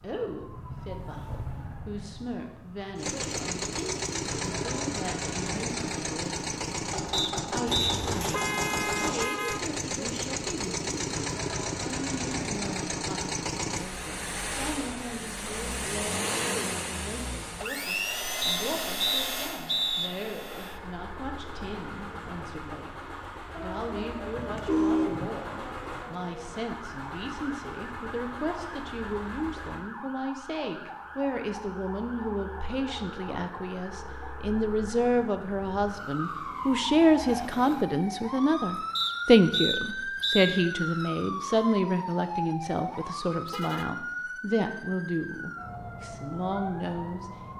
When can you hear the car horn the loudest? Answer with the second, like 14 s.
25 s.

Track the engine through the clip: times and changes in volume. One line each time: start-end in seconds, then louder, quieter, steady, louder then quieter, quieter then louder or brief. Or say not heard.
3.0-29.9 quieter.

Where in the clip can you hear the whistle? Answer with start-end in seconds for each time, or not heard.
7.1-8.0, 18.4-20.1, 39.0-40.6.